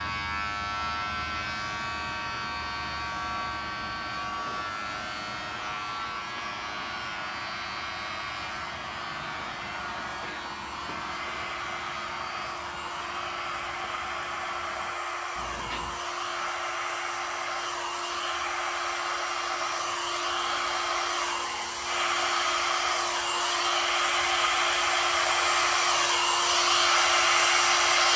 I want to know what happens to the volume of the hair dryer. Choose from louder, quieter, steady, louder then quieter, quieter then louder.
louder.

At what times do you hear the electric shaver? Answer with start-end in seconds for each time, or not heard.
0.0-28.1.